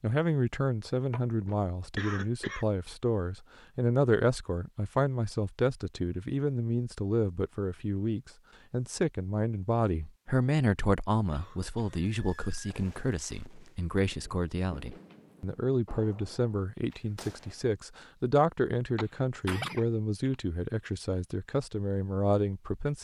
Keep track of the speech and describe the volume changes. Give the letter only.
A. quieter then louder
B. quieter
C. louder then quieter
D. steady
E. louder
D.